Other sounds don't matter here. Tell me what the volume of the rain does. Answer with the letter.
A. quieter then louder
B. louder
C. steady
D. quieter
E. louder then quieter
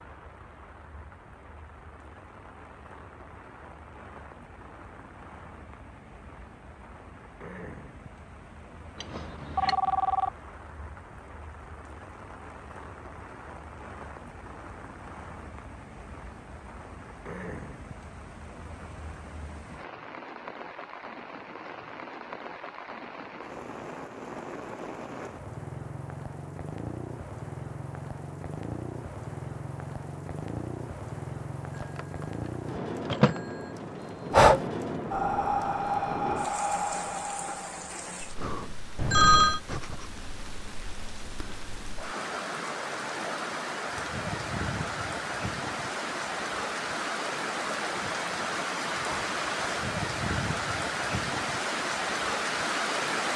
B.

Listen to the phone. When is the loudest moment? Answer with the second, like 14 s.
39 s.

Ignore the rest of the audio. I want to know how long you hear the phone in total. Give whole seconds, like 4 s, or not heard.
3 s.